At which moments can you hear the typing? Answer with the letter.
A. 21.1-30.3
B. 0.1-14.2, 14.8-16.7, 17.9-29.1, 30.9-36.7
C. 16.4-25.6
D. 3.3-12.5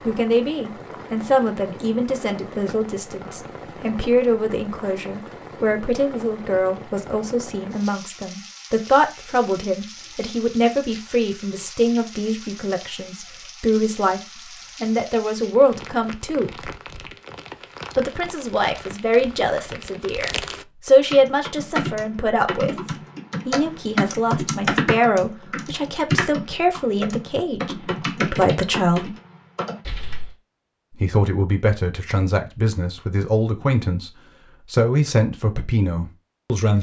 A.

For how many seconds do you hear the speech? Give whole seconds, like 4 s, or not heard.
33 s.